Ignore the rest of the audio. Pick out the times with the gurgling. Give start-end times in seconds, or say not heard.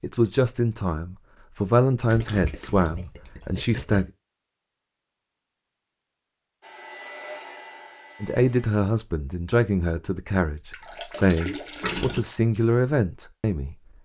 2.1-4.0, 10.7-12.2.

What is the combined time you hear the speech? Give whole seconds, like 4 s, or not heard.
10 s.